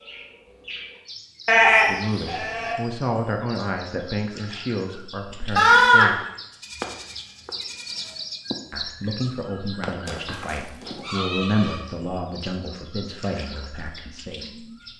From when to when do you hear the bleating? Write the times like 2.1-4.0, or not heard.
1.4-2.8, 5.5-8.1, 10.1-11.8.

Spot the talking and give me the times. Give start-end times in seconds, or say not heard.
1.8-6.2, 8.7-14.7.